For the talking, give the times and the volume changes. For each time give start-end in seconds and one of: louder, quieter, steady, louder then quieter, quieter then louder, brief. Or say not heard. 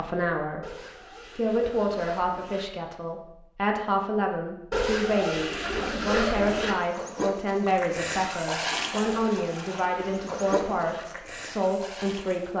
0.0-0.8 brief
1.4-12.5 steady.